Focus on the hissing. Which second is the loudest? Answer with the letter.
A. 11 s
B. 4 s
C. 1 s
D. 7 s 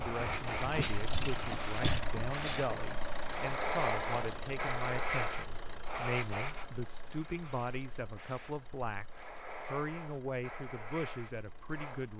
B.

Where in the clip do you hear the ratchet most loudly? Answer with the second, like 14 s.
2 s.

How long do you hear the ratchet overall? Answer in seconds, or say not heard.
3 s.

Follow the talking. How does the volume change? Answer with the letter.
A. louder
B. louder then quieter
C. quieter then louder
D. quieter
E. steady
E.